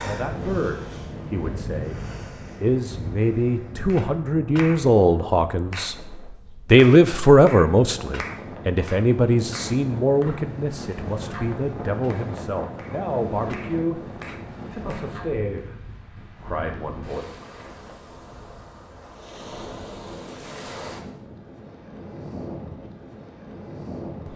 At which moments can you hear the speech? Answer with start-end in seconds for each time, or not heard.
0.0-2.0, 2.6-6.0, 6.7-17.2.